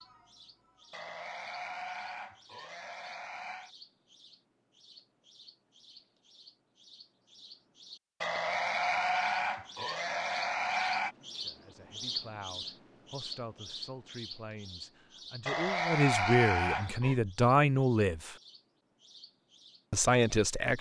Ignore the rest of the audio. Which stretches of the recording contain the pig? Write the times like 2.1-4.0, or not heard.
0.9-3.7, 8.2-11.2, 15.4-17.1.